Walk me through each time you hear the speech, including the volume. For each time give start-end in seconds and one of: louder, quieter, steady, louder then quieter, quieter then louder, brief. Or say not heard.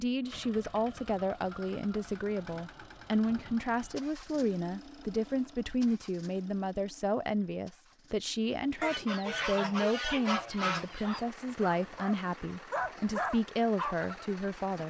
0.0-14.8 steady.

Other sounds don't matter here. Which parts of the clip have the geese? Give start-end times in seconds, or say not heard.
8.8-11.2.